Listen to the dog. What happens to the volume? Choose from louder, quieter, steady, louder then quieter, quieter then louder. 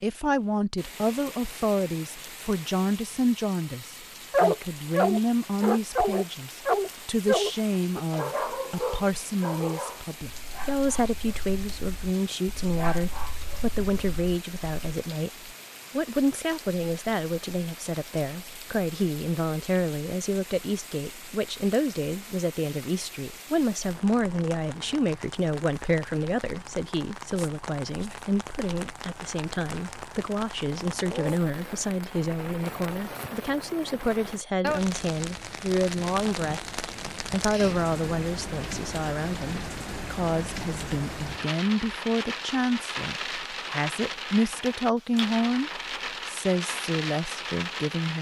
quieter then louder.